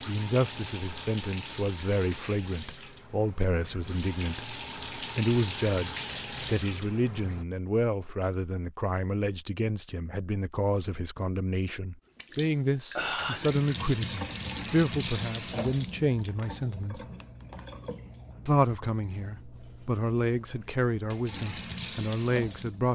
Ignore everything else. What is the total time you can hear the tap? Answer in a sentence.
You can hear the tap for 18 seconds altogether.